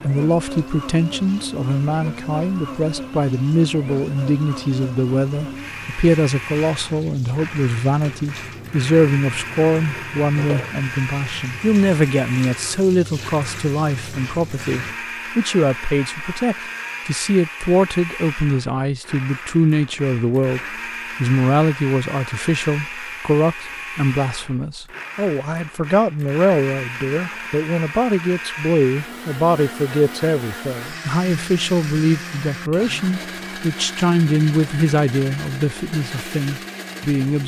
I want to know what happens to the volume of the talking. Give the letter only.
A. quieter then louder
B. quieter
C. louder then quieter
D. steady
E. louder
D.